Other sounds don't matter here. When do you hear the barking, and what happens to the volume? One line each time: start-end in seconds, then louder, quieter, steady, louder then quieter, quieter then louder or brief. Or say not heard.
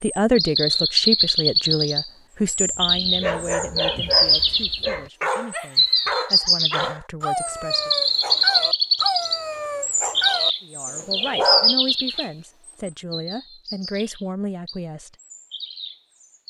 2.8-12.2 steady.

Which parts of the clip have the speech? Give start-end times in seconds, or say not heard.
0.0-7.9, 10.6-15.2.